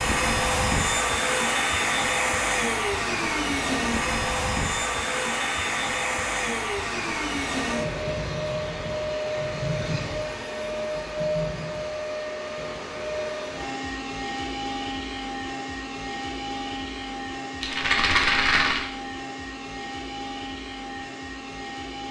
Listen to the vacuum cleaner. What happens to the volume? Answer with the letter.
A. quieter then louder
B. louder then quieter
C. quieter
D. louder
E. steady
C.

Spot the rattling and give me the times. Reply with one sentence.
The rattling can be heard from 17.6 to 18.9 s.